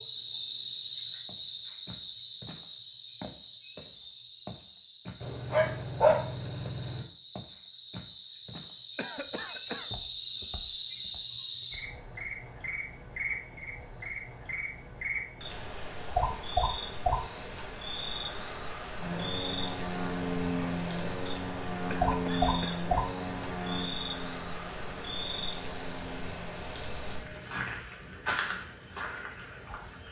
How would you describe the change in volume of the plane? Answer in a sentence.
The loudness of the plane goes down.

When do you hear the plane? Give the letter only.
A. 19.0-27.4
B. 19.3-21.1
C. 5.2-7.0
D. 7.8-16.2
A.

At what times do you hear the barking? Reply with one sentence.
You can hear the barking from 5.2 to 7.0 s.